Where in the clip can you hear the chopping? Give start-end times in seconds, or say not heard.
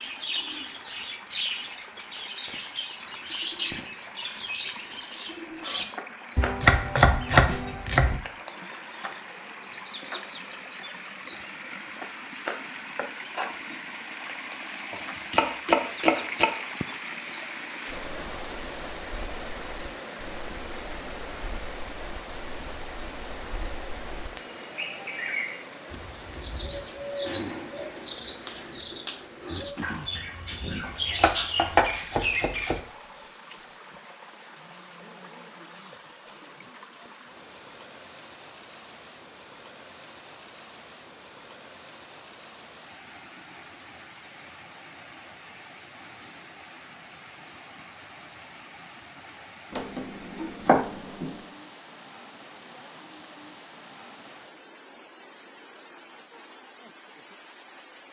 6.3-8.2, 14.9-16.5, 30.9-32.8, 49.7-51.4.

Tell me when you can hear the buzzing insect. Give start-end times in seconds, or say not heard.
not heard.